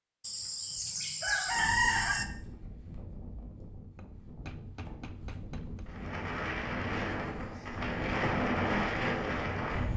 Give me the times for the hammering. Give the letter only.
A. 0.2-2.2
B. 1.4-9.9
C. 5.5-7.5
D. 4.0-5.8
D.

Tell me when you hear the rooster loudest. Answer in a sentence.
The volume of the rooster peaks at 2 seconds.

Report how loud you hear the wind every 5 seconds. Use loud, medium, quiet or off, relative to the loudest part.
quiet, loud.